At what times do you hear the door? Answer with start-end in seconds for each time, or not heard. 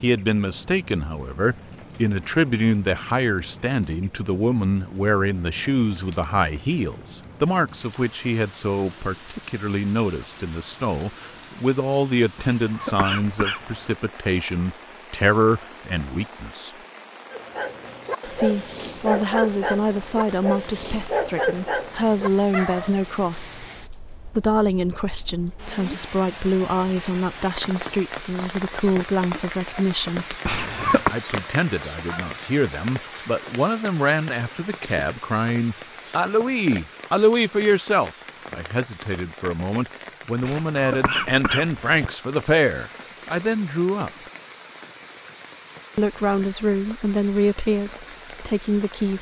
not heard.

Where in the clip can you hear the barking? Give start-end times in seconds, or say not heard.
17.3-23.1.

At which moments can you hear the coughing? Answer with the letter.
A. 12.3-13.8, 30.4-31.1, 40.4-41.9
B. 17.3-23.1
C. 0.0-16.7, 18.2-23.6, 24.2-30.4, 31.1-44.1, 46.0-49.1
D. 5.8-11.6
A.